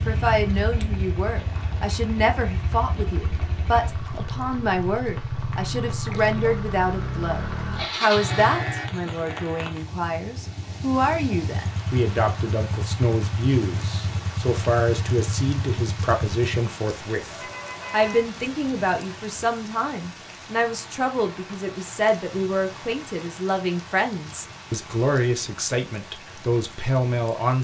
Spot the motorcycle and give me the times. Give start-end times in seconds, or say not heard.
0.0-16.6.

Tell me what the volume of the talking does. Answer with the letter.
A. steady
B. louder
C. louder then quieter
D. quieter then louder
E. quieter
A.